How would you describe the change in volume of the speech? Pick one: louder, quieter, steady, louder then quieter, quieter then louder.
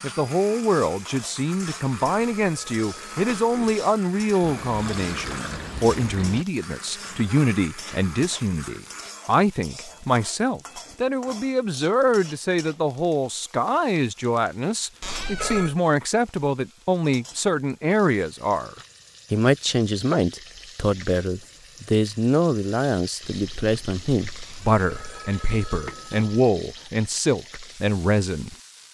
steady.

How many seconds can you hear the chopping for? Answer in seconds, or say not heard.
not heard.